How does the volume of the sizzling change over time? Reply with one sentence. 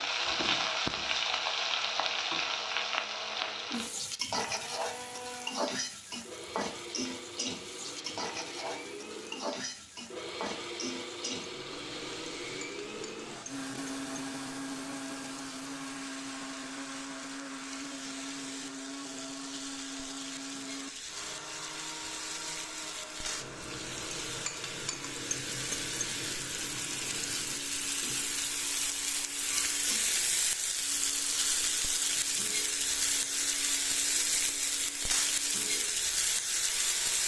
The loudness of the sizzling goes down, then up.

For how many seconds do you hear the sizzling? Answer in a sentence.
You can hear the sizzling for 37 seconds altogether.